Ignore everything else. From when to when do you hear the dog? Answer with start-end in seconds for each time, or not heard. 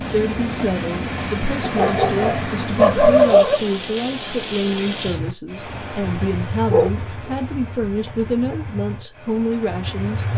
1.6-3.5, 6.7-8.6.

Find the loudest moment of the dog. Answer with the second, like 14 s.
3 s.